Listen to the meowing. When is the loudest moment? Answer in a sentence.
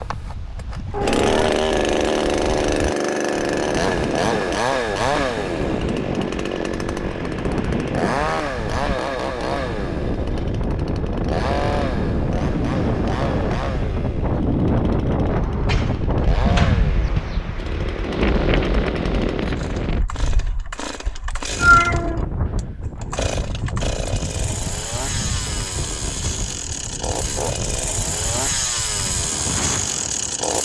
The loudest moment of the meowing is at 22 seconds.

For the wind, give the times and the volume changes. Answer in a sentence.
The wind can be heard from 0.0 to 30.5 s, getting louder then quieter.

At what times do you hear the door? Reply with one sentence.
You can hear the door from 15.3 to 17.3 s.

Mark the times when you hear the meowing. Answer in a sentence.
You can hear the meowing from 0.9 to 1.6 s and from 21.6 to 22.3 s.